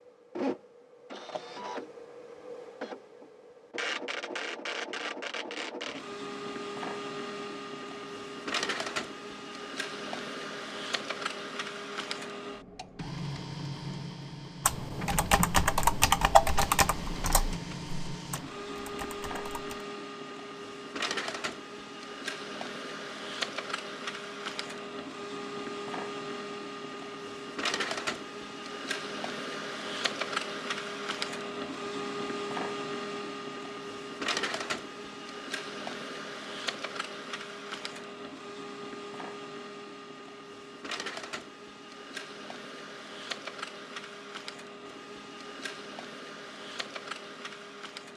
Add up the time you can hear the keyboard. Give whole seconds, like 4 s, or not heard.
5 s.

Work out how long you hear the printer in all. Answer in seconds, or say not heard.
48 s.